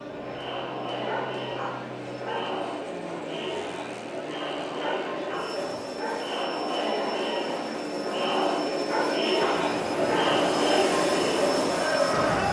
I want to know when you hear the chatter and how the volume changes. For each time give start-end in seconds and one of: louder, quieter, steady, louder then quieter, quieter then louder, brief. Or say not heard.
0.0-12.4 louder.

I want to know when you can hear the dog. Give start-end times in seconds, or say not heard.
0.9-2.5, 4.7-6.3, 8.8-10.3.